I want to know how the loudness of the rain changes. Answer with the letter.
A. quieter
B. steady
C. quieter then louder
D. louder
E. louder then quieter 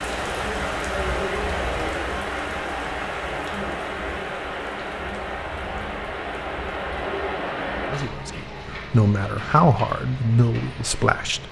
A.